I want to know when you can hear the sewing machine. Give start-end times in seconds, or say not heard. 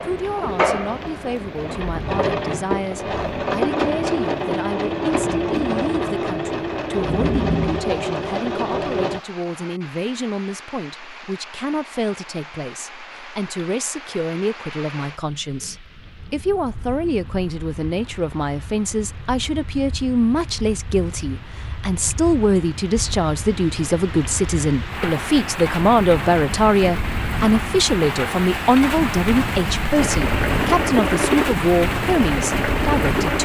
0.0-9.2, 29.9-33.4.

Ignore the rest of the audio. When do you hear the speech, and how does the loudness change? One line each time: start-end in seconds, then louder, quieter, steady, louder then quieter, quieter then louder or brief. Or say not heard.
0.0-33.4 louder.